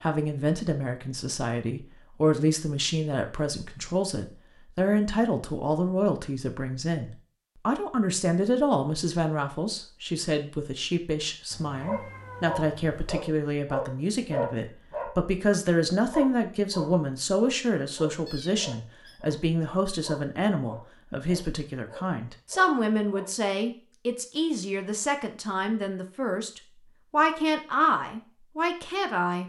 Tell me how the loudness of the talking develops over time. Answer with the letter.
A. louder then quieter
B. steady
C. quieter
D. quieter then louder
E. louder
B.